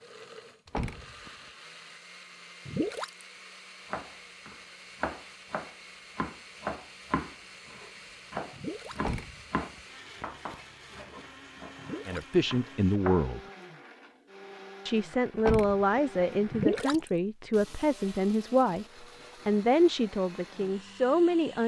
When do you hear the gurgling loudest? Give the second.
17 s.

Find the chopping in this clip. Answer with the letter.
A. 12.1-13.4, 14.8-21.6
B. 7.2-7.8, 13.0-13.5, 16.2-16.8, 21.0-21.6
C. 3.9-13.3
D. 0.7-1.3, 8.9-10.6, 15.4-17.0
C.